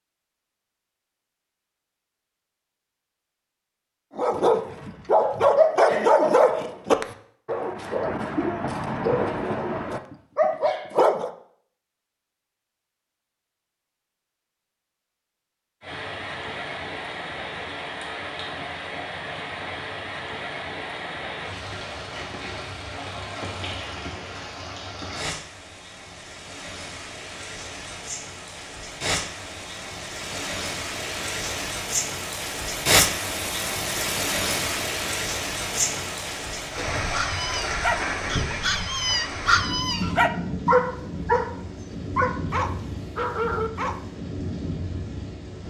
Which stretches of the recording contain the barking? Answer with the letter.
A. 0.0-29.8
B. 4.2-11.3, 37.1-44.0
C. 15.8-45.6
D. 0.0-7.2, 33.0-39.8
B.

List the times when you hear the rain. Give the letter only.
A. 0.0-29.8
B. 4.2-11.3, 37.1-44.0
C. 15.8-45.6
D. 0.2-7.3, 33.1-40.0
C.